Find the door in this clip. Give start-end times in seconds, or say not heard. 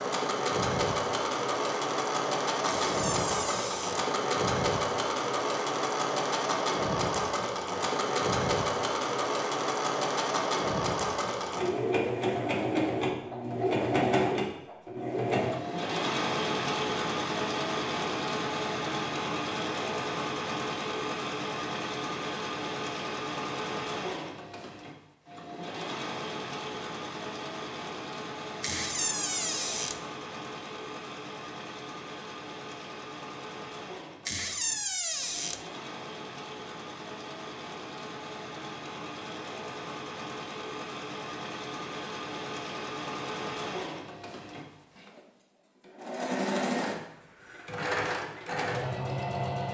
2.6-4.0, 28.6-30.0, 34.2-35.6.